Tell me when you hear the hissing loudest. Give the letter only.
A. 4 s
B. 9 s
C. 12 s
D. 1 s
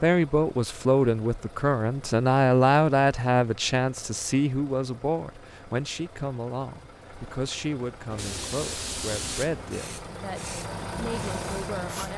B.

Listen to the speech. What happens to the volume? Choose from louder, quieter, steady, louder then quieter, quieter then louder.
quieter.